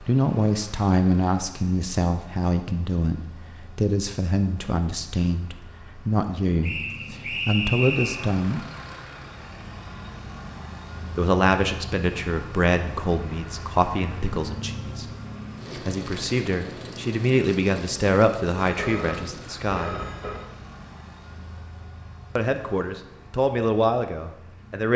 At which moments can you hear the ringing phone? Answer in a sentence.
You can hear the ringing phone from 18.6 to 20.4 s.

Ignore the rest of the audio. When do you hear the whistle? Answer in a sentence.
You can hear the whistle from 6.6 to 8.2 s.